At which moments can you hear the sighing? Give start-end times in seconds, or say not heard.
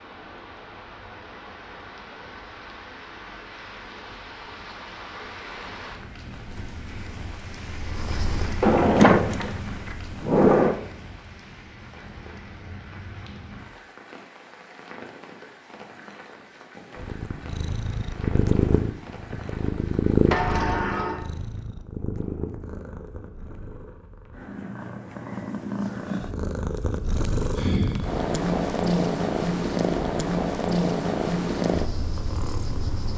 27.6-28.2.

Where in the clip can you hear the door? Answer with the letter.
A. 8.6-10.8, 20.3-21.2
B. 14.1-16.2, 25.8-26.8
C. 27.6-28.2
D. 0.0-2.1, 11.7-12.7
A.